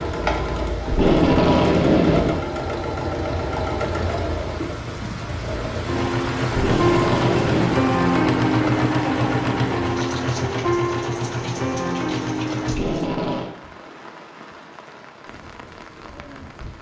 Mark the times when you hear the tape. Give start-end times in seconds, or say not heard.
0.8-2.4, 6.5-7.8, 12.7-13.5.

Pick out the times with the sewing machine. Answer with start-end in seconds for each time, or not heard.
0.0-12.8.